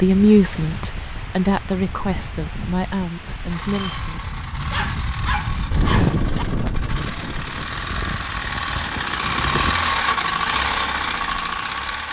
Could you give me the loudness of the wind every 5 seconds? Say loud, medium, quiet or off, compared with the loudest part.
medium, loud, off.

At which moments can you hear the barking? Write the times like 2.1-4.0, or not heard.
4.5-6.5.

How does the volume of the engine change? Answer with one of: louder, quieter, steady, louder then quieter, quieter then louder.
louder.